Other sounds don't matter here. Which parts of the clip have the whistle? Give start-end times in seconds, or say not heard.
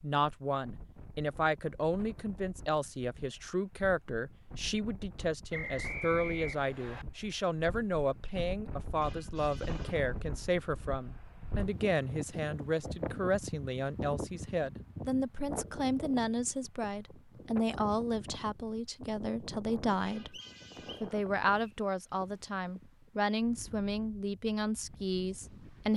5.5-7.0, 20.3-21.7.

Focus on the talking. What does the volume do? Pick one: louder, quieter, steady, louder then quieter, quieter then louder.
steady.